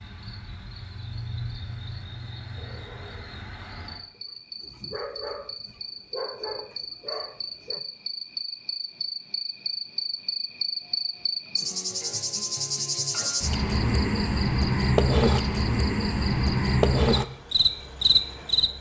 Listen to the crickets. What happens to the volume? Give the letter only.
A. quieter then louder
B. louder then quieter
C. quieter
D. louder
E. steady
D.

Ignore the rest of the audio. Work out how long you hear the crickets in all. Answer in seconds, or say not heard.
19 s.